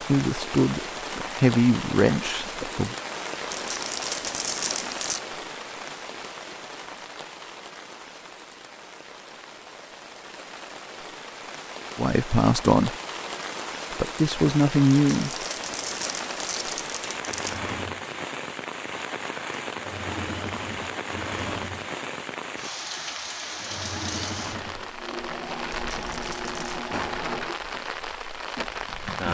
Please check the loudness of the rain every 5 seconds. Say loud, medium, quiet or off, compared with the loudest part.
loud, medium, loud, loud, loud, loud.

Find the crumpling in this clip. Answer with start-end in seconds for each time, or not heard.
3.5-5.2, 14.9-17.6, 25.7-26.9.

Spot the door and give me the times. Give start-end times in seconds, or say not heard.
26.9-27.6.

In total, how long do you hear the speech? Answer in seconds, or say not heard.
5 s.